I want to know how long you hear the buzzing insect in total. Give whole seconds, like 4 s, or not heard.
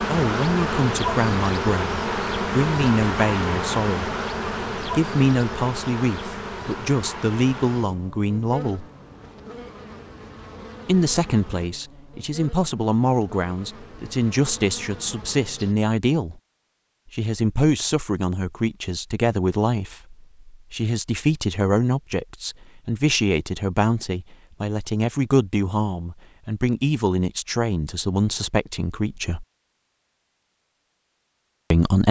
16 s.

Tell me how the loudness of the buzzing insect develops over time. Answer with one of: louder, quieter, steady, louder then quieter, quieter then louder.
quieter.